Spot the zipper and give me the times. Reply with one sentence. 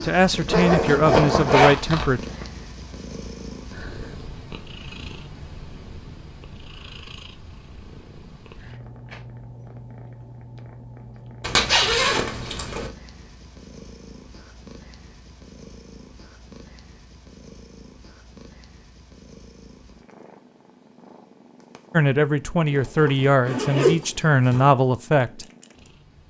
The zipper can be heard from 0.5 to 2.5 s, from 11.4 to 12.9 s and from 22.7 to 24.7 s.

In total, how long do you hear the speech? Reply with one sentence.
The speech can be heard for 6 seconds in total.